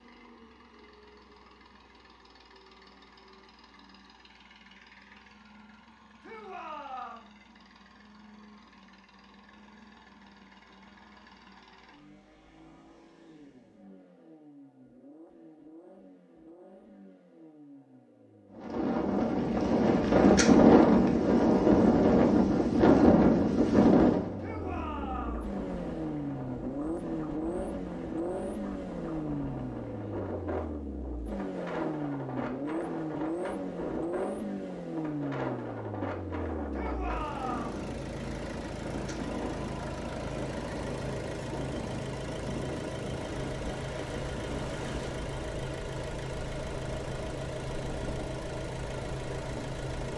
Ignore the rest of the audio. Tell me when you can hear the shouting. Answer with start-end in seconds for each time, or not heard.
6.2-7.3, 24.4-25.4, 36.7-37.8.